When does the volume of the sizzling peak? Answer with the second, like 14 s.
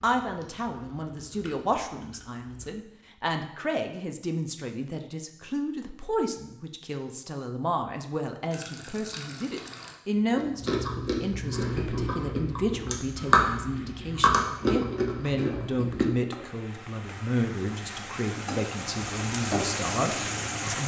20 s.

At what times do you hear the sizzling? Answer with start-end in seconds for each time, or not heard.
11.5-20.8.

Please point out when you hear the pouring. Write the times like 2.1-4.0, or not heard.
8.5-10.0.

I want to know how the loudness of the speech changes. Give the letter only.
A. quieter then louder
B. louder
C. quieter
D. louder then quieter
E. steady
E.